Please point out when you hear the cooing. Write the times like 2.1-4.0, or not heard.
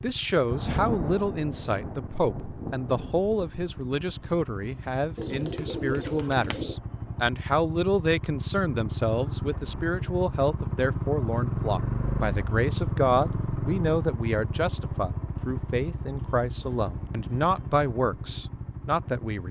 5.2-6.8.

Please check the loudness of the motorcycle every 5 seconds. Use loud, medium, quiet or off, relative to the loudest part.
quiet, medium, loud, medium.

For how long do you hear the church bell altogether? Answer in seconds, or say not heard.
not heard.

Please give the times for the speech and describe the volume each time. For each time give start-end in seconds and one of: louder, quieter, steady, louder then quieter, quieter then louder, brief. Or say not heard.
0.0-19.4 steady.